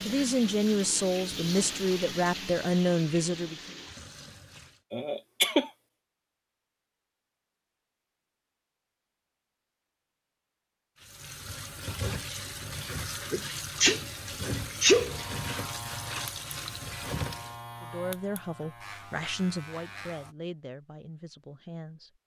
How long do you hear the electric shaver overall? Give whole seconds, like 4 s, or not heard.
5 s.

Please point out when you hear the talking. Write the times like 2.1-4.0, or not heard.
0.0-3.5, 17.8-22.1.